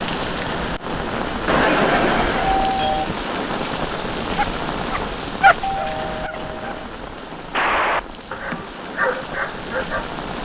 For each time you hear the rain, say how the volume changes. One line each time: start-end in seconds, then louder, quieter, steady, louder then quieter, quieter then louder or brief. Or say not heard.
0.0-10.4 quieter.